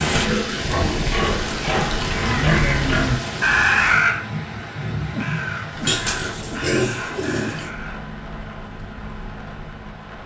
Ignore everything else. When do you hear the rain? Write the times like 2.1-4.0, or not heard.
0.0-10.2.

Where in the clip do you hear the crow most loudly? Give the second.
4 s.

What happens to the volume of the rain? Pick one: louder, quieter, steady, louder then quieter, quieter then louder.
quieter.